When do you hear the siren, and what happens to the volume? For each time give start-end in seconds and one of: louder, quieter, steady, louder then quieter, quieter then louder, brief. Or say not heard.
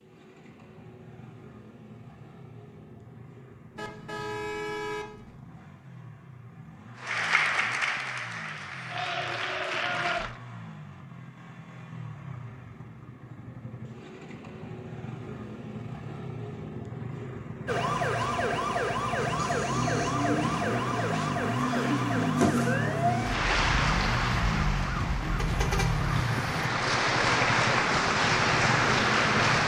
17.6-26.2 quieter.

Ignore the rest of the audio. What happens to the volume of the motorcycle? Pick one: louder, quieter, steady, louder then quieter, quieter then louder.
louder.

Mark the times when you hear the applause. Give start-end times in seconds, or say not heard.
7.0-10.3, 23.2-29.6.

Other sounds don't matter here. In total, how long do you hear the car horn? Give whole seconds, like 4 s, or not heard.
3 s.